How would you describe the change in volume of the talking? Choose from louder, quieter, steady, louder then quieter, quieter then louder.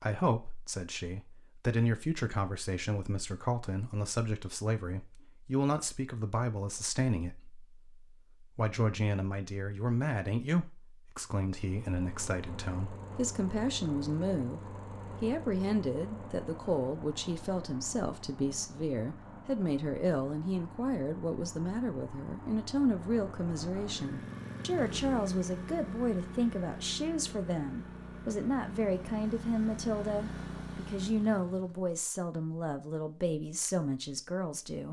steady.